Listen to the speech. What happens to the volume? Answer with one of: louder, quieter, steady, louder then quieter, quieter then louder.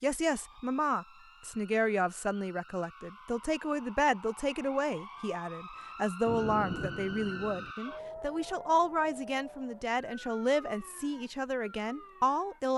steady.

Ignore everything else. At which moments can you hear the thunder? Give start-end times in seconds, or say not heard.
6.2-7.8.